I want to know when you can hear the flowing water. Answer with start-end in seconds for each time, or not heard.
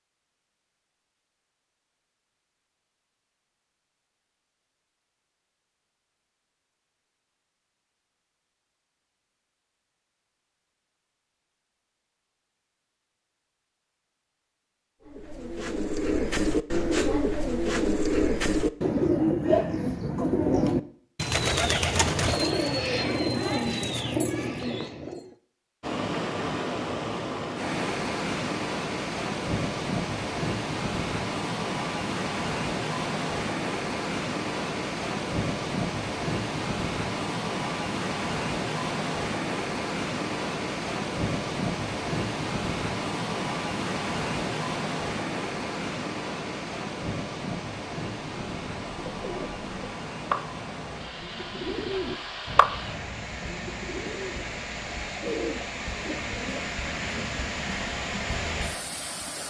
25.8-59.4.